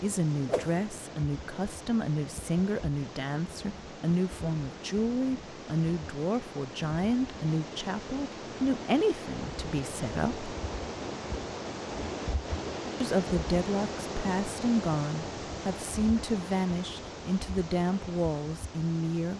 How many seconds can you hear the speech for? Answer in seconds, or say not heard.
17 s.